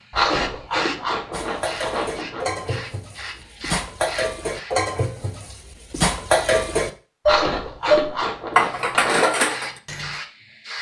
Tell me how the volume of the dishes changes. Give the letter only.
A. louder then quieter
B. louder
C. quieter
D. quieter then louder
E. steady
B.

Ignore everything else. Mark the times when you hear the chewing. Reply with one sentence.
The chewing can be heard from 0.1 to 2.8 s and from 7.2 to 9.2 s.